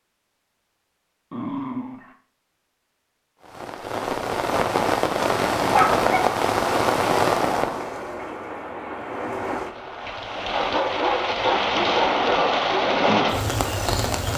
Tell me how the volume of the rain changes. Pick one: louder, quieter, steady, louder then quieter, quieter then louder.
quieter then louder.